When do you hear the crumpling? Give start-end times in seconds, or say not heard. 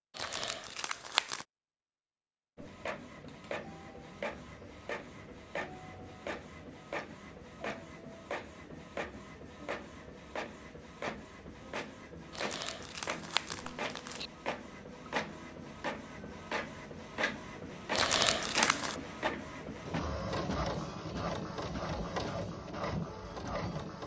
0.1-1.4, 12.3-14.3, 17.9-19.0.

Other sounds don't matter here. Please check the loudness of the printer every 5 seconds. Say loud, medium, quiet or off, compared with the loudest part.
medium, medium, medium, loud, loud.